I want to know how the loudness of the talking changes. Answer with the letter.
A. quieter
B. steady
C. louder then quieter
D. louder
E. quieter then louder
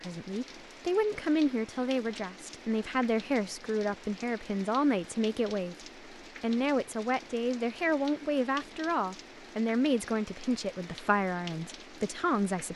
B.